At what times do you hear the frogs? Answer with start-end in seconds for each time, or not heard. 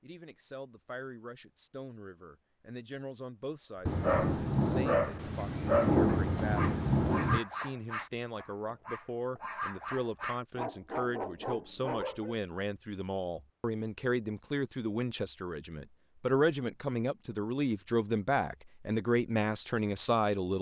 not heard.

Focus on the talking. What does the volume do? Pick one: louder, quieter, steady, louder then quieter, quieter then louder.
louder.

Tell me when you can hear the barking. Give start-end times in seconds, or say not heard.
4.0-12.3.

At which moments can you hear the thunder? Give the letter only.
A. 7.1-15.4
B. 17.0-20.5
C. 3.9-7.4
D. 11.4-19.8
C.